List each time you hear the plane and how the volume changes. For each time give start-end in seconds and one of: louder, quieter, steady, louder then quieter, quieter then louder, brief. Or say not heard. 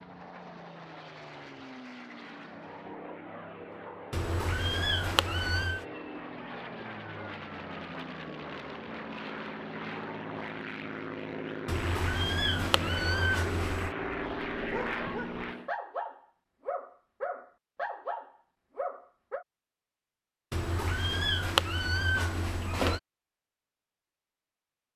0.0-15.7 louder.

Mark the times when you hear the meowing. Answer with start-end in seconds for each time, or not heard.
4.1-5.8, 11.7-13.9, 20.5-23.0.